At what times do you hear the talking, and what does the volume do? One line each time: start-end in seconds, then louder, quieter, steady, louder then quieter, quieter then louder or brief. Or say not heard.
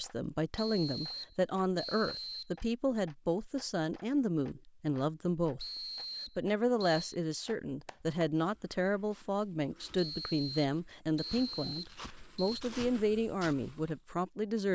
0.0-14.6 steady.